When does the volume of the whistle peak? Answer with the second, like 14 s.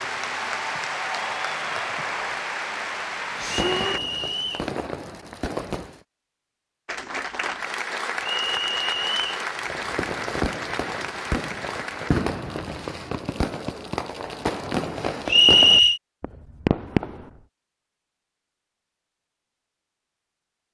16 s.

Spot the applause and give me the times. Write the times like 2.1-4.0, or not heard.
0.0-4.0, 6.8-12.1.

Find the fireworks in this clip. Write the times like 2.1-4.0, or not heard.
3.3-6.0, 9.6-17.3.